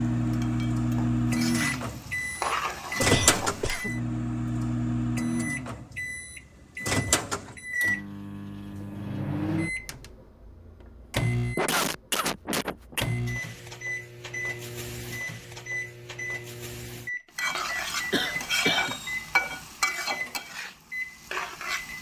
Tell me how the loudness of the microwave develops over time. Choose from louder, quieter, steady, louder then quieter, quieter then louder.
quieter.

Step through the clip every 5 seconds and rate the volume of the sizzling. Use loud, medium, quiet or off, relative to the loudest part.
medium, off, off, loud, medium.